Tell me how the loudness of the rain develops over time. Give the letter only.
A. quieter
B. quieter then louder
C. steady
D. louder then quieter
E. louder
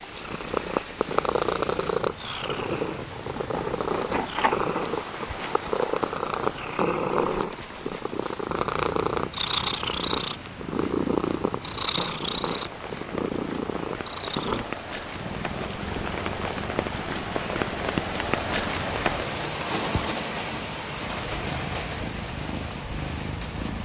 E.